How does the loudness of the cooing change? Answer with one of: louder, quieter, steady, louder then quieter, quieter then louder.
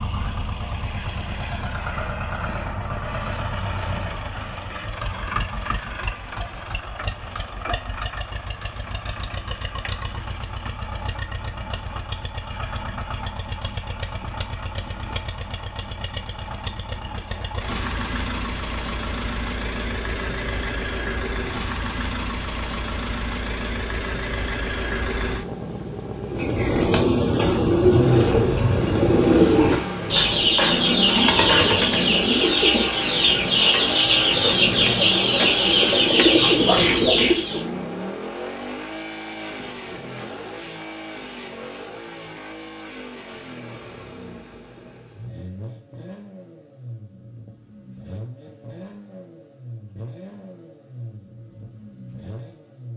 steady.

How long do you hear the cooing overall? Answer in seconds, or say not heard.
11 s.